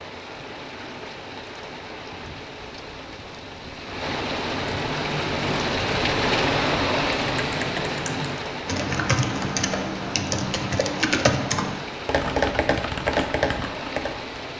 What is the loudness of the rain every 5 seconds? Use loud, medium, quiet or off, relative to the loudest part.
medium, loud, medium.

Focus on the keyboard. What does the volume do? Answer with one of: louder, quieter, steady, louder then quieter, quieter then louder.
louder.